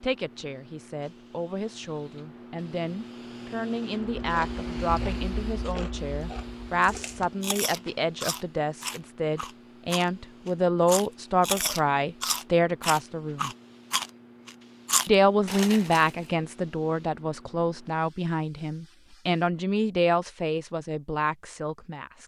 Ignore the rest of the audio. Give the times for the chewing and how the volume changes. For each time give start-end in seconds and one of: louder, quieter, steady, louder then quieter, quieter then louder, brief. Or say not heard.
4.2-16.3 louder.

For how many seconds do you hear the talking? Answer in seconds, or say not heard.
21 s.